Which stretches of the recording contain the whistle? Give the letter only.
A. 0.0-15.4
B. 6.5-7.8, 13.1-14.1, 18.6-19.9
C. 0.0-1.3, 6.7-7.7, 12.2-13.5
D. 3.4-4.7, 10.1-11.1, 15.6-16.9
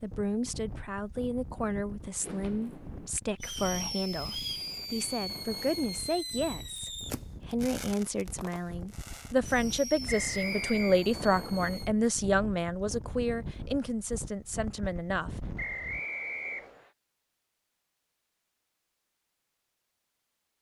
D.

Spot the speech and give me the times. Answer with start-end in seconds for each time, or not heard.
0.0-15.4.